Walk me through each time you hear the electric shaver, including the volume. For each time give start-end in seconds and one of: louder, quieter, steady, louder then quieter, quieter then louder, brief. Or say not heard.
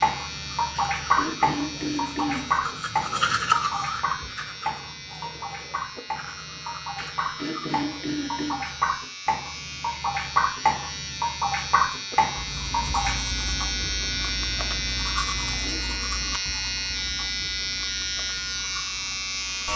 0.0-19.7 louder.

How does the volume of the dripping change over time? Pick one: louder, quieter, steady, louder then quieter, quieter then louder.
quieter then louder.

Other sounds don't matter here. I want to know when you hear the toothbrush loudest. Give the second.
3 s.